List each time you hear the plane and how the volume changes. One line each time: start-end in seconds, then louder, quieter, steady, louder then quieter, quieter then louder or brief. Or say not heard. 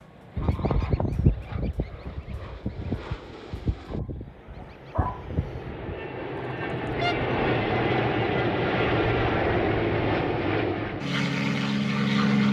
0.0-12.4 louder.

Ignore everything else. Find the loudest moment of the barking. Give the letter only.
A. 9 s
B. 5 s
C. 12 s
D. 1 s
B.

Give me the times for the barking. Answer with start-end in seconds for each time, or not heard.
3.9-5.3.